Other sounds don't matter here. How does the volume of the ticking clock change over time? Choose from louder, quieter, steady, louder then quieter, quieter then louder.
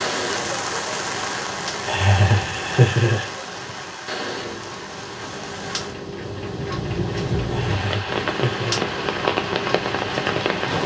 louder.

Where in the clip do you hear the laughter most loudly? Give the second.
3 s.